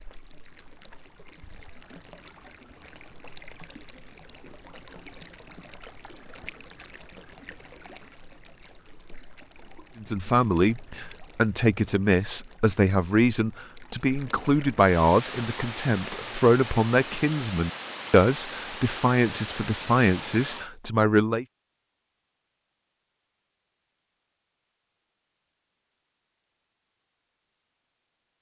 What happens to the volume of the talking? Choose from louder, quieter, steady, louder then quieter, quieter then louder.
steady.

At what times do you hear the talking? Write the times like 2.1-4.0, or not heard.
10.0-21.4.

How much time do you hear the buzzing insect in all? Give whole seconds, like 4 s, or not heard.
not heard.